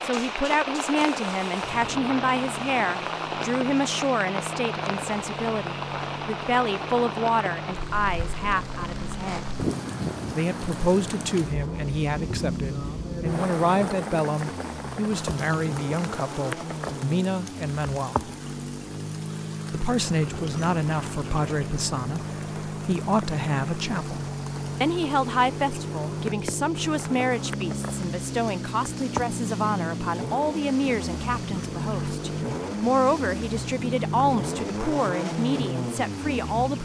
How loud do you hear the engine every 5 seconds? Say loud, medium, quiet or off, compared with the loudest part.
medium, medium, medium, medium, loud, loud, loud, loud.